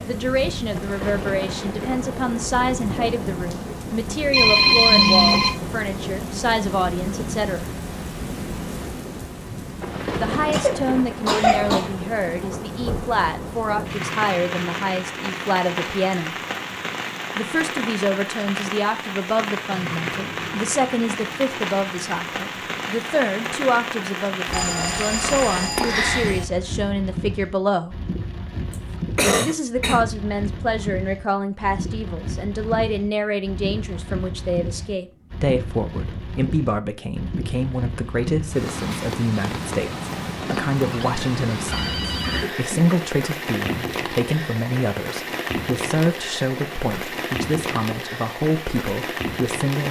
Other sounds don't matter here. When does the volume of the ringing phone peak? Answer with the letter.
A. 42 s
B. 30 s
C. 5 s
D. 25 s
C.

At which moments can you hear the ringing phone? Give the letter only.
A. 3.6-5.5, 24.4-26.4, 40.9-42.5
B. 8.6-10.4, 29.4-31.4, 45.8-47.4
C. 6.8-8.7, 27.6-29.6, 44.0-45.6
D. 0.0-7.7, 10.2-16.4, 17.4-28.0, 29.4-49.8
A.